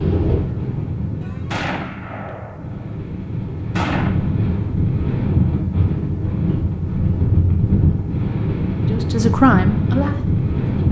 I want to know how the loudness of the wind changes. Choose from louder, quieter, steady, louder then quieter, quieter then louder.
louder.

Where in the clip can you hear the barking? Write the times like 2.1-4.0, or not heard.
not heard.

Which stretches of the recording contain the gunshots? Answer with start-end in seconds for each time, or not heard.
1.2-3.0, 3.7-4.2.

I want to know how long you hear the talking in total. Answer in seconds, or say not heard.
2 s.